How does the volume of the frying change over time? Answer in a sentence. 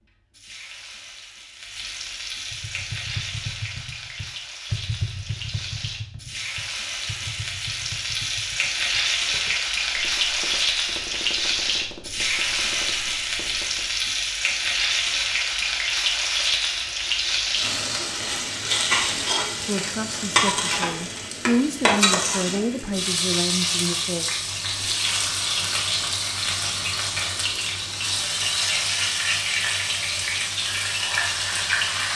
The loudness of the frying goes up.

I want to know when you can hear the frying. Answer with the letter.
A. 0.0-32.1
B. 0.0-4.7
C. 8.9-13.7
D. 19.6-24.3
A.